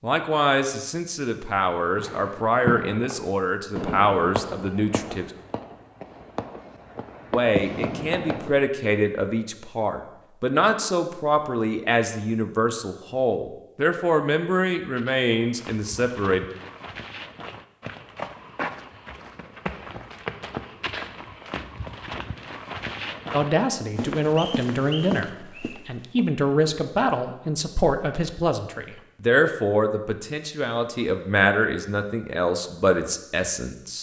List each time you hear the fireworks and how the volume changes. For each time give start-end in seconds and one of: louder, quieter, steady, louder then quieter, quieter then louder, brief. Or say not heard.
1.9-8.7 quieter then louder.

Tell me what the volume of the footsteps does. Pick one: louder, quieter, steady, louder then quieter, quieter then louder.
louder.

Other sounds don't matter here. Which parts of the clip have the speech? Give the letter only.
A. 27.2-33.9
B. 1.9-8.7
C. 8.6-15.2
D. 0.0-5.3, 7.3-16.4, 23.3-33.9
D.